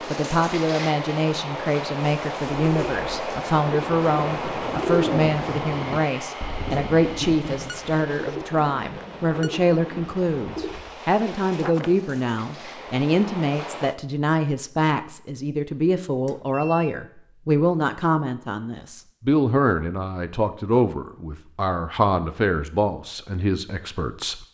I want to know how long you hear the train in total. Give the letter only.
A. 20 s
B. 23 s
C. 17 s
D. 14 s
D.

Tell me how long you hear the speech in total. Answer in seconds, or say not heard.
24 s.